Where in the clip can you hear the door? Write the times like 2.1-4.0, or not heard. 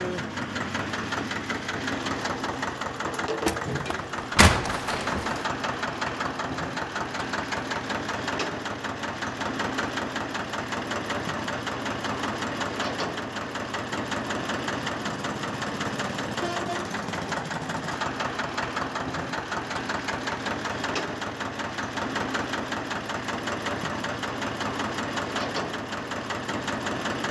3.5-5.5.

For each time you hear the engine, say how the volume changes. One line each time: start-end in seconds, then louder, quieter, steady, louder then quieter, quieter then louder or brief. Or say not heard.
0.0-27.2 steady.